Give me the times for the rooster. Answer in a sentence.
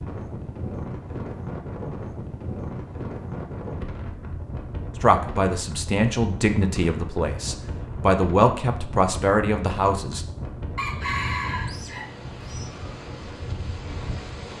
The rooster can be heard from 10.8 to 12.7 s.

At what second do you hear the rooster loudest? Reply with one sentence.
The loudest moment of the rooster is at 11 seconds.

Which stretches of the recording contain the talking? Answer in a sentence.
The talking can be heard from 5.0 to 10.2 s.